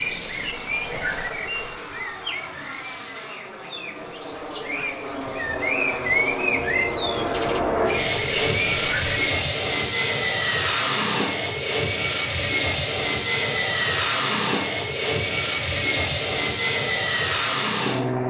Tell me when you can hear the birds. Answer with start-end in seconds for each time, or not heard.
0.0-9.2.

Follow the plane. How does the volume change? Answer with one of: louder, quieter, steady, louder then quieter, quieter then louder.
louder.